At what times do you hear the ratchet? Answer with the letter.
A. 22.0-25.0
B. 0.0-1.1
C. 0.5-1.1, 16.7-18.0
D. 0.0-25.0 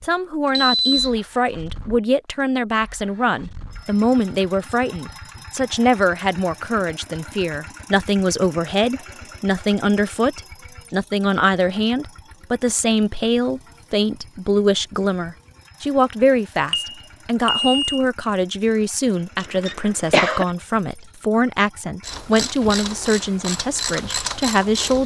A.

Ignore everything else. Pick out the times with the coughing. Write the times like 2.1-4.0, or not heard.
19.4-20.4.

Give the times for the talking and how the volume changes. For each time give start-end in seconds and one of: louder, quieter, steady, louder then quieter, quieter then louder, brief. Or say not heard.
0.0-25.0 steady.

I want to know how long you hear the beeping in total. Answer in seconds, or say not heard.
2 s.